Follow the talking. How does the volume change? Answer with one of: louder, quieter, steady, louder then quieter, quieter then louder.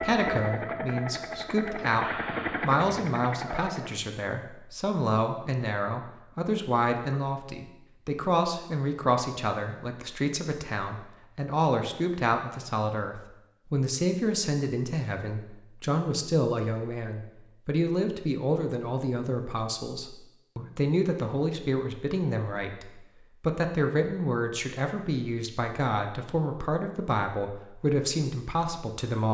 steady.